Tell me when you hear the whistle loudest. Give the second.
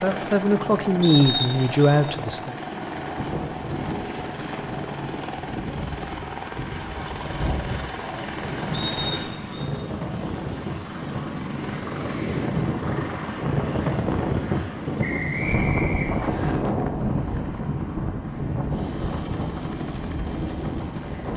1 s.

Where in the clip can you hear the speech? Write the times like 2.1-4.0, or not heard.
0.0-2.5.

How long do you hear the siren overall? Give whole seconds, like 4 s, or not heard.
not heard.